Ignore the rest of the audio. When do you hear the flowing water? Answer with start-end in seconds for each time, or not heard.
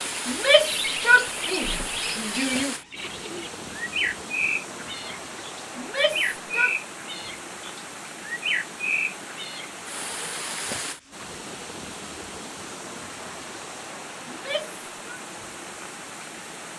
0.0-16.7.